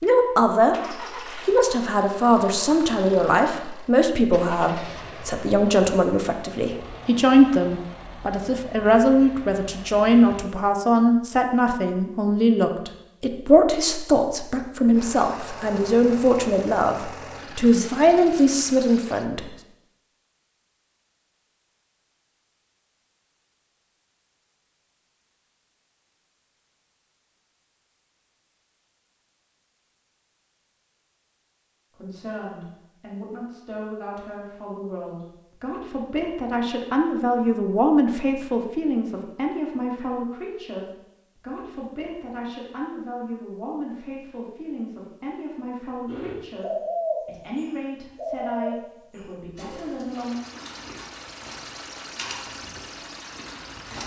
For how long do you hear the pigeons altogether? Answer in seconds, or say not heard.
8 s.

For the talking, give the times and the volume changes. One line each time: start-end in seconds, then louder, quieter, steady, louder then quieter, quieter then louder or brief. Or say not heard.
0.0-19.4 steady
31.9-50.4 louder then quieter.